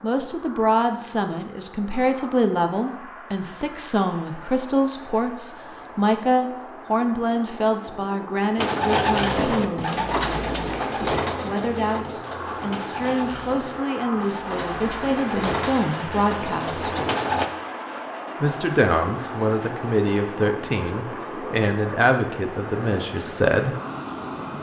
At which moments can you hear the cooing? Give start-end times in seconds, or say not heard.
8.6-17.5.